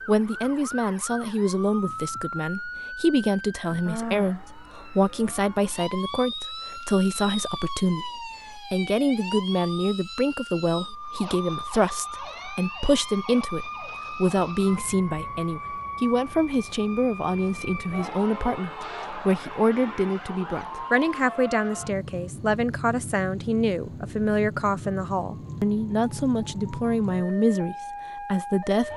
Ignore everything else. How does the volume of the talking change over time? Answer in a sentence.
The loudness of the talking stays about the same.